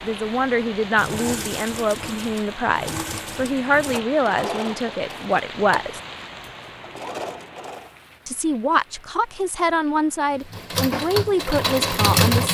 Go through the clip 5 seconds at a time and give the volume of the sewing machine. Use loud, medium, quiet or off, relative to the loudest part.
medium, quiet, loud.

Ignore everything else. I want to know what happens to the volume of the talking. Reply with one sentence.
The volume of the talking stays about the same.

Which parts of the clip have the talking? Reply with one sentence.
The talking can be heard from 0.0 to 6.0 s and from 8.2 to 12.4 s.